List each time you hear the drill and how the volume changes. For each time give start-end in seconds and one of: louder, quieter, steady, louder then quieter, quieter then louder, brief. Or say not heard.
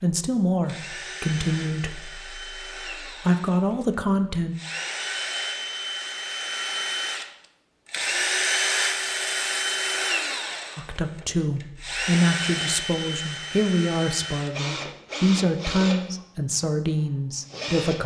0.0-18.0 louder then quieter.